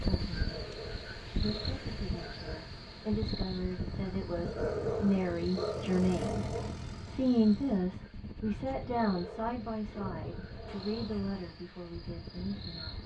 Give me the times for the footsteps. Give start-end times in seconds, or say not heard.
not heard.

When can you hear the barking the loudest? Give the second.
5 s.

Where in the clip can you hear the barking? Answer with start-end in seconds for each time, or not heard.
0.3-2.7, 4.4-6.8, 8.8-10.9.